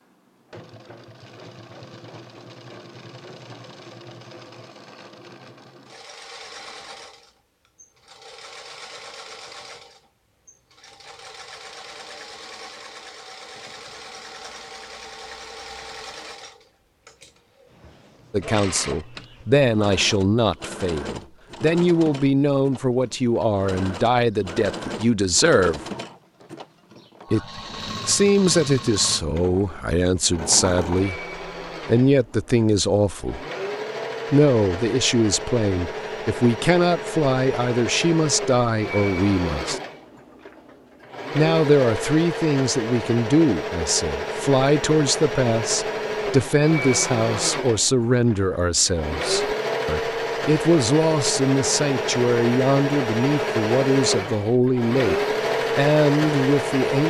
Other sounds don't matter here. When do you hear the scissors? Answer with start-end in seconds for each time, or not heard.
not heard.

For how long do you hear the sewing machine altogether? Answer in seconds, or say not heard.
57 s.